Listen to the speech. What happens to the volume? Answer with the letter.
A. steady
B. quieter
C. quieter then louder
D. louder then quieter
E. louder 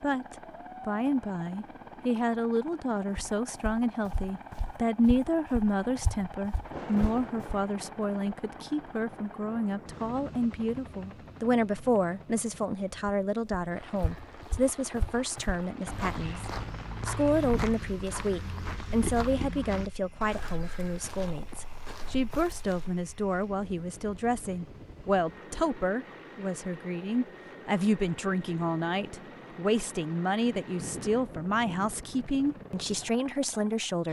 A.